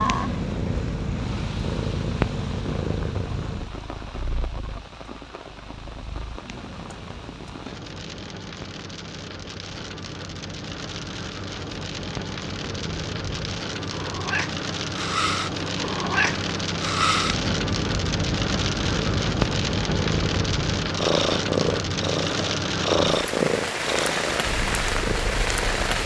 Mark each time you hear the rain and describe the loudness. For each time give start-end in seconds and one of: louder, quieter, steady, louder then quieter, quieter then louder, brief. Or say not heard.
0.0-26.0 louder.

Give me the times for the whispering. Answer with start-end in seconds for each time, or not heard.
not heard.